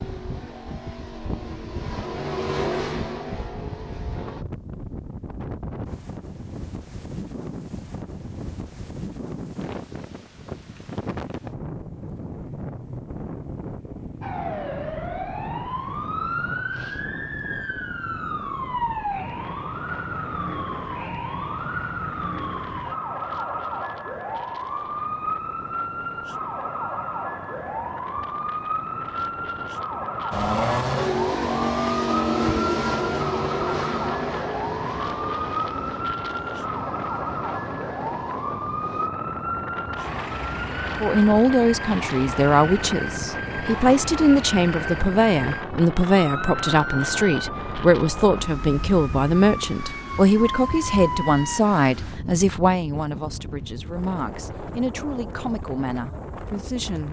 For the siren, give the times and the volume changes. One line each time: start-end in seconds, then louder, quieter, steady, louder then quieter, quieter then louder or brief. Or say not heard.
14.2-51.6 steady.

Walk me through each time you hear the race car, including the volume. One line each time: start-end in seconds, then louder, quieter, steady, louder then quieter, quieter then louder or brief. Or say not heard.
0.0-4.5 louder then quieter
30.3-39.1 quieter.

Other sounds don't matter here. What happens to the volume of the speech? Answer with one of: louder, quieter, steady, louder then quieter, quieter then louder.
quieter.